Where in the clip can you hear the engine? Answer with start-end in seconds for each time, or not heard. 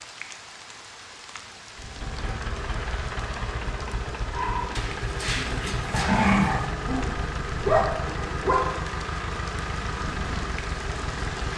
1.8-11.5.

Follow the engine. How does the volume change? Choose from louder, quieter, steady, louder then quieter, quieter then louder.
steady.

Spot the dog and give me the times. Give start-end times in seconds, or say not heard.
4.3-8.7.